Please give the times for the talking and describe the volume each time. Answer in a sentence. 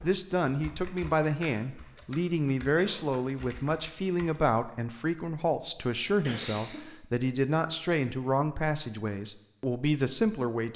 You can hear the talking from 0.0 to 10.7 s, at a steady volume.